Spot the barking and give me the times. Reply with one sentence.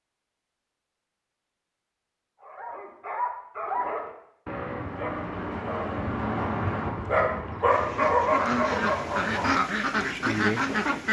The barking can be heard from 2.4 to 9.6 s.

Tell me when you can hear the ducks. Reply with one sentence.
You can hear the ducks from 7.7 to 11.0 s.